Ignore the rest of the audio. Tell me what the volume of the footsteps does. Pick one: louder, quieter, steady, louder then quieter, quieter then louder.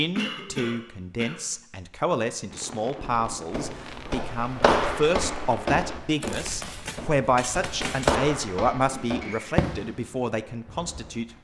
quieter then louder.